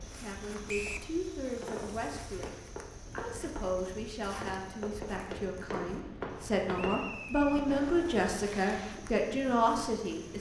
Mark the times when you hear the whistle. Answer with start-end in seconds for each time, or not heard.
0.7-1.1, 6.8-7.5.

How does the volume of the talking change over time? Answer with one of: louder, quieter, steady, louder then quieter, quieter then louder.
louder.